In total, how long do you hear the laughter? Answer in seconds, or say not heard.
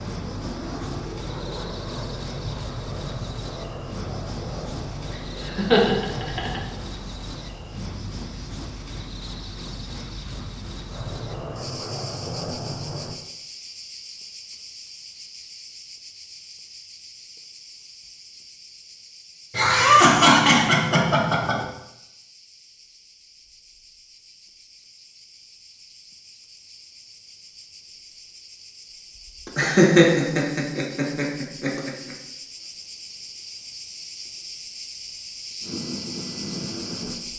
6 s.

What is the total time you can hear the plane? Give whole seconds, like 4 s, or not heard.
12 s.